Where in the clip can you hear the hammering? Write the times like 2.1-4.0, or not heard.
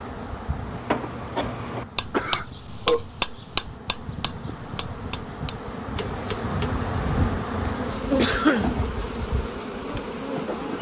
0.7-6.7.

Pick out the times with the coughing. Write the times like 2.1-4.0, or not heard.
2.1-3.0, 8.2-8.7.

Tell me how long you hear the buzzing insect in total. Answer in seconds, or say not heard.
11 s.